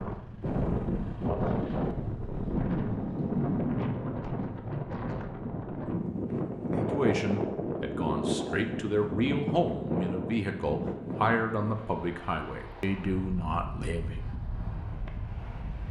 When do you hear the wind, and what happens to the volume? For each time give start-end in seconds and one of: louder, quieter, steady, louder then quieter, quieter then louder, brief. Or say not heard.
0.0-15.8 quieter.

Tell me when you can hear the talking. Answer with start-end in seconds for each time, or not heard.
6.9-14.2.